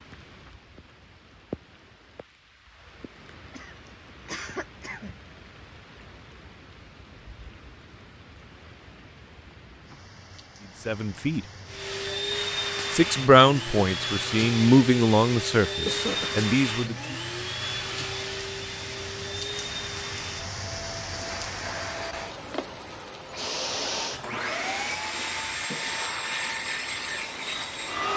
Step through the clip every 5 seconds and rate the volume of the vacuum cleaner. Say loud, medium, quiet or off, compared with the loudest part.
off, off, loud, loud, loud, loud.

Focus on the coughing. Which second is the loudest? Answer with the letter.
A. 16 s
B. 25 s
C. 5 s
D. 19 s
A.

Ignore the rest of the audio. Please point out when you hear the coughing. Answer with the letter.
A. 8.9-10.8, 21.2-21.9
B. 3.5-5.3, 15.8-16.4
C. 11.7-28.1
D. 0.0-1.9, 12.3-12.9
B.